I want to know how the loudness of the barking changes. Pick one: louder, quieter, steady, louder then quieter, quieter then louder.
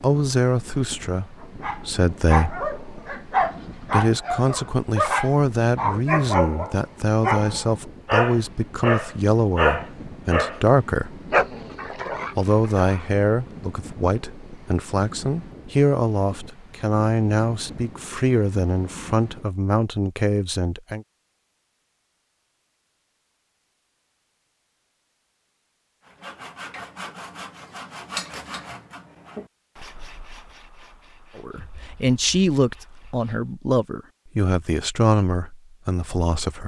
steady.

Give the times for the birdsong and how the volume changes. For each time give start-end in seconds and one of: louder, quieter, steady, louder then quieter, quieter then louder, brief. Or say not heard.
not heard.